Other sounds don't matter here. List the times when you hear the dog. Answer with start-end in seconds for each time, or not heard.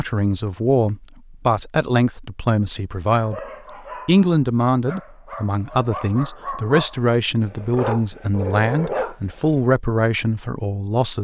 3.1-9.6.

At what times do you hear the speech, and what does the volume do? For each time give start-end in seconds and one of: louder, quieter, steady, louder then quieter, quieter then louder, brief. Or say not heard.
0.0-11.1 steady.